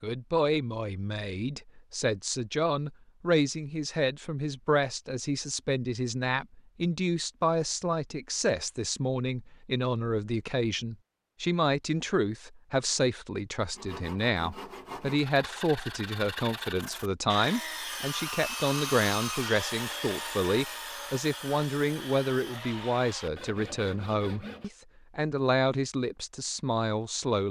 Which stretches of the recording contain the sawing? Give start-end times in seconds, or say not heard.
13.8-24.7.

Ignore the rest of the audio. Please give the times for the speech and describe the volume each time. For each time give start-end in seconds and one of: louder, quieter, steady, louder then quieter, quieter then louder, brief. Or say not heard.
0.0-27.4 steady.